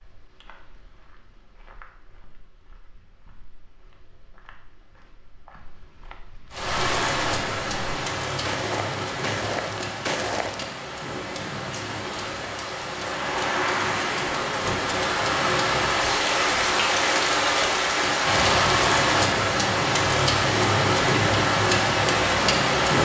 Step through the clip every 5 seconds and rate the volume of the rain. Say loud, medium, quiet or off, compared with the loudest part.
off, medium, medium, loud, loud.